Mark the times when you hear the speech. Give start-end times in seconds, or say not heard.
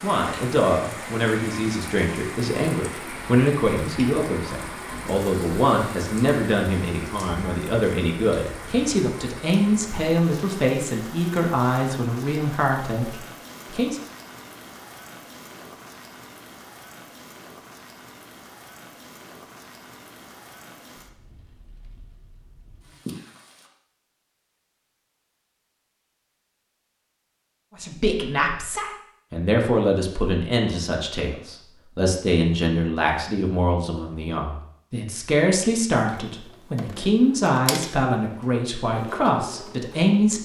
0.0-14.0, 27.8-40.3.